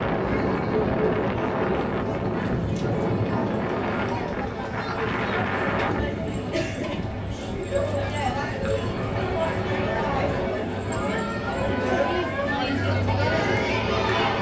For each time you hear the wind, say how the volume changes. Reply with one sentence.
The wind can be heard from 0.0 to 14.3 s, getting quieter.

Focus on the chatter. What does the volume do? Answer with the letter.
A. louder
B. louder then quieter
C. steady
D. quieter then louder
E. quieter
A.